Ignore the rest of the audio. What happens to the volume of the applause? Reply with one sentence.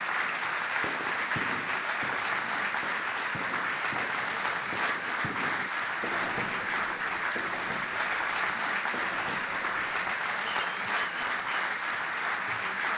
The volume of the applause stays about the same.